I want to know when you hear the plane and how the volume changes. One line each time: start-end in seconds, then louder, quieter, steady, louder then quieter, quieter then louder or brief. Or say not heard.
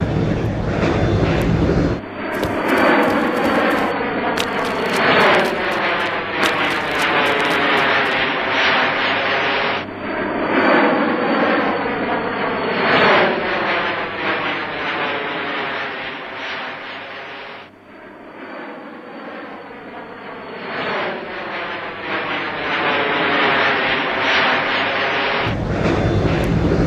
0.0-26.8 quieter then louder.